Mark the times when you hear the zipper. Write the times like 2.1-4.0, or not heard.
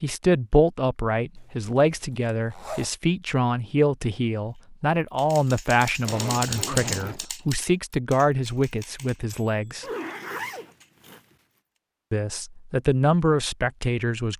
1.4-2.9, 6.0-7.2, 9.8-11.2.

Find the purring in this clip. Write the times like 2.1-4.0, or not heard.
not heard.